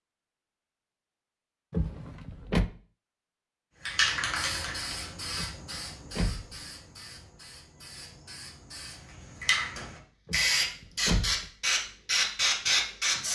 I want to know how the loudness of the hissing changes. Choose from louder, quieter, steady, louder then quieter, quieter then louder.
quieter then louder.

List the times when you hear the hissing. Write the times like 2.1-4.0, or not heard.
3.8-13.2.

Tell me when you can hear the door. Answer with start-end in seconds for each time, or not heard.
1.7-2.7, 5.3-6.5, 10.2-11.5.